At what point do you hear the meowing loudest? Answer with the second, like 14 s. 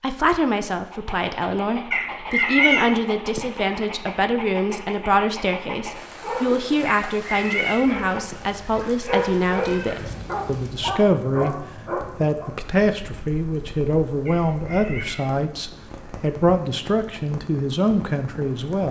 3 s.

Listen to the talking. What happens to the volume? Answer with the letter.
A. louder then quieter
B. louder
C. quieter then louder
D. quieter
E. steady
E.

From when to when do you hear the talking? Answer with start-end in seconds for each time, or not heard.
0.0-11.6, 12.2-18.8.